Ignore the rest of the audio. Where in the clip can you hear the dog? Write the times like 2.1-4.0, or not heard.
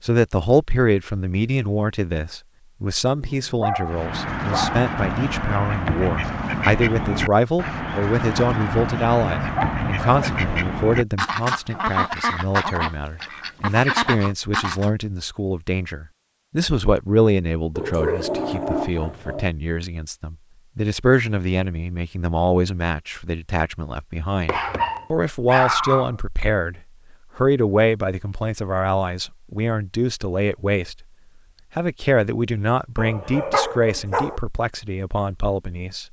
3.1-4.8, 9.4-10.4, 17.8-19.5, 24.4-26.1, 33.0-34.4.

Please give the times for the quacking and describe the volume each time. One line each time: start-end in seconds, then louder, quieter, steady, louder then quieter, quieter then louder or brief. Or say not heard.
3.9-14.9 steady.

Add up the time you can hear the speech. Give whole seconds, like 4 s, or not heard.
35 s.